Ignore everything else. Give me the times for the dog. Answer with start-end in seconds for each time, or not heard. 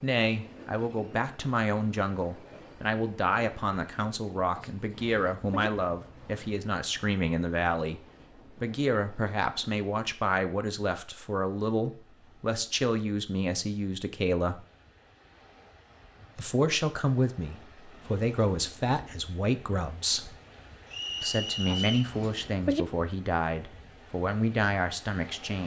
4.5-5.7, 21.6-22.9.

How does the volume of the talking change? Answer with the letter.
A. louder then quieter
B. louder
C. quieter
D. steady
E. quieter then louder
D.